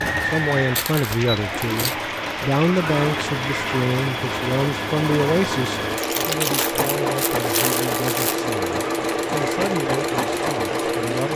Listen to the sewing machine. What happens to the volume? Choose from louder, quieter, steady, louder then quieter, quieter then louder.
louder.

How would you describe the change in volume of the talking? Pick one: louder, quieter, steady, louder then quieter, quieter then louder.
quieter.